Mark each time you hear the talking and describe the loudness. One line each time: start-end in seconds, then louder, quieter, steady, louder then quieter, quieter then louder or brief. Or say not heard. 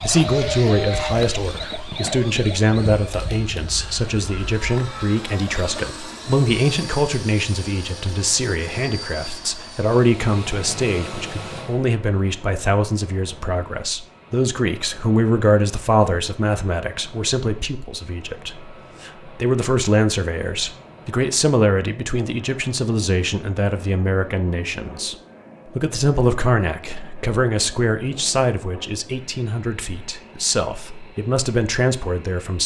0.0-32.6 steady.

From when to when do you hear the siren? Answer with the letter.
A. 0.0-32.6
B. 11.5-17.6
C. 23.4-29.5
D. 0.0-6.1
D.